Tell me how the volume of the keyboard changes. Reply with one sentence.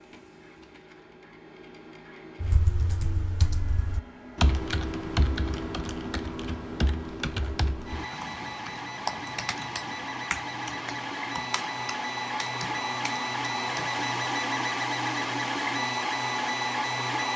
The volume of the keyboard goes down.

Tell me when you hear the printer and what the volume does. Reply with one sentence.
You can hear the printer from 0.0 to 17.3 s, getting louder.